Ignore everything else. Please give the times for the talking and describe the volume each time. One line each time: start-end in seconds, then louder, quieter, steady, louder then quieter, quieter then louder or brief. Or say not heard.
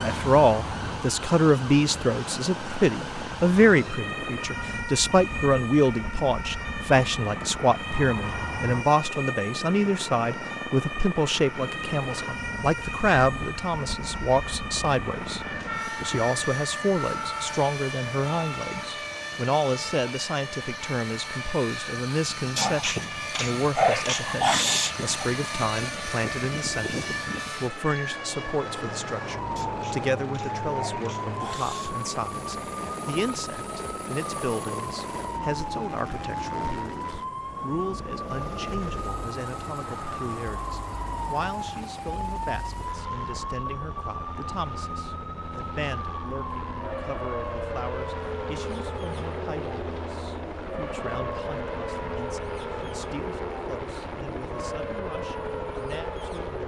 0.0-56.6 quieter.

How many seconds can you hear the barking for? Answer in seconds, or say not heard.
5 s.